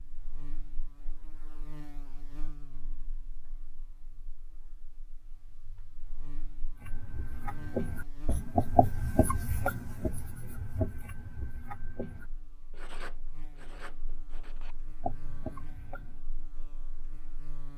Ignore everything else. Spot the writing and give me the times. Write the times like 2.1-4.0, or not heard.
6.8-16.2.